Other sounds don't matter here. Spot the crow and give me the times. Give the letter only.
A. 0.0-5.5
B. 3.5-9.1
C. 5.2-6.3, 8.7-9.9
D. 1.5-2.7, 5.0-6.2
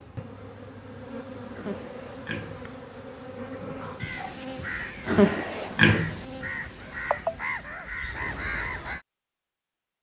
B.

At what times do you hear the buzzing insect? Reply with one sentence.
The buzzing insect can be heard from 0.0 to 7.6 s.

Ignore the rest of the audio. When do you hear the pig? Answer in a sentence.
The pig can be heard from 1.5 to 2.7 s and from 5.0 to 6.2 s.